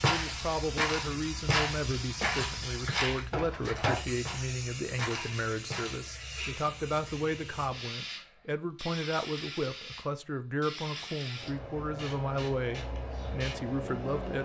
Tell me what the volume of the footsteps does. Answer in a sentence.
The volume of the footsteps goes down.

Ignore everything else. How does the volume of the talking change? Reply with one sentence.
The loudness of the talking stays about the same.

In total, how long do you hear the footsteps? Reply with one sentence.
You can hear the footsteps for 6 seconds altogether.